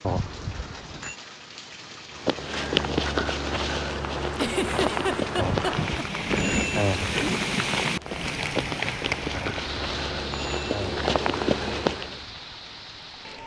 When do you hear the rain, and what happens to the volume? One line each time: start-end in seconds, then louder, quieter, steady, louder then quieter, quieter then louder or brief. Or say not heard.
0.0-13.4 louder then quieter.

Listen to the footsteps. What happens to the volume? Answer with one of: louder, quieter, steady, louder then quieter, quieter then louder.
quieter then louder.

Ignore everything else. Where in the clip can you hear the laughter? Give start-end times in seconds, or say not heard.
4.3-6.0.